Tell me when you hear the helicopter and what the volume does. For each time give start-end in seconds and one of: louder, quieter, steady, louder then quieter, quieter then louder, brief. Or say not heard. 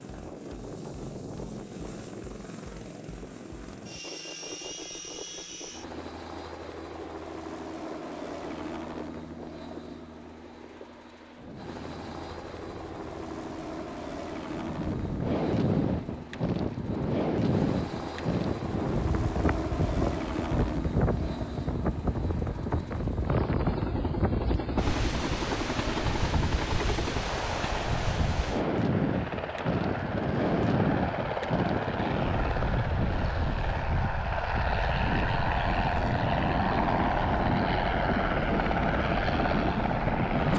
0.0-40.5 louder.